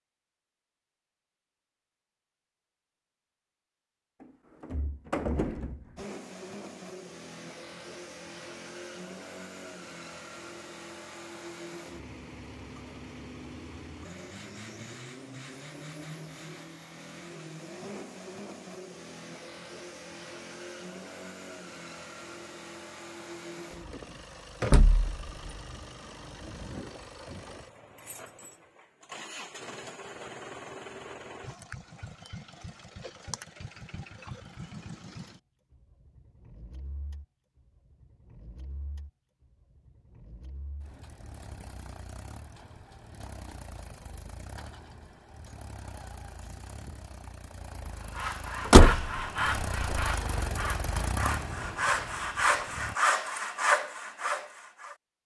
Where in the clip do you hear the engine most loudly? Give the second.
51 s.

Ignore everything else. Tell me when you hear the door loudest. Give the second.
49 s.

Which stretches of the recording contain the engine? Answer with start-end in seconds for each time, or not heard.
6.0-53.0.